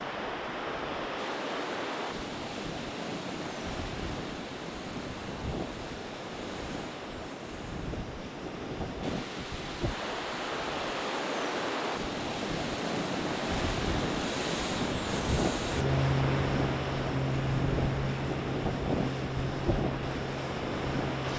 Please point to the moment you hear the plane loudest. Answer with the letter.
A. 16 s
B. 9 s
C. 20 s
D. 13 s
A.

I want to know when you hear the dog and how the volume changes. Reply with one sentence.
The dog can't be heard in this clip.